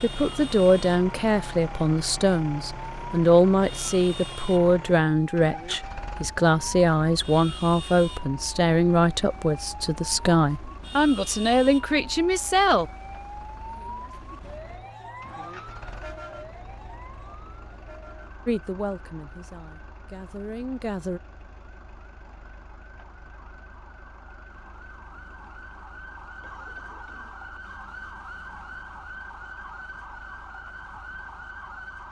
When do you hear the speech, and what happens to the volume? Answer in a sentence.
You can hear the speech from 0.0 to 12.8 s, at a steady volume; and briefly from 18.4 to 21.2 s.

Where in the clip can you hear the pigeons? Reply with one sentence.
The pigeons can't be heard in this clip.